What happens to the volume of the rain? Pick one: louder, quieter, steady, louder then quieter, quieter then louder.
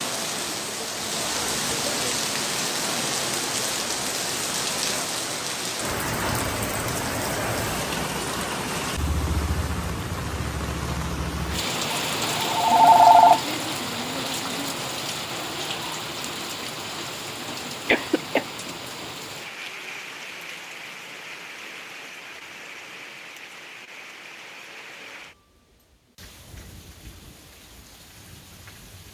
quieter.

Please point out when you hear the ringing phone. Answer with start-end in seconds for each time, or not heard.
11.9-13.4.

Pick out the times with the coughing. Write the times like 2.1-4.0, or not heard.
17.9-18.4.